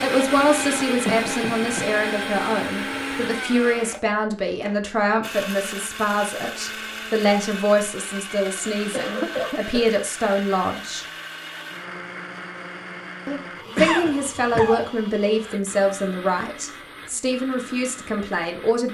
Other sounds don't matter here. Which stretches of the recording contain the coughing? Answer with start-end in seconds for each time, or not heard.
1.0-1.9, 8.9-9.8, 13.8-14.9.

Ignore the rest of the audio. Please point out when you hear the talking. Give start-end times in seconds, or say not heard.
0.0-11.1, 13.2-18.8.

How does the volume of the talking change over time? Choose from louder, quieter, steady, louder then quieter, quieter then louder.
steady.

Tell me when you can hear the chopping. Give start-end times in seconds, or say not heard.
not heard.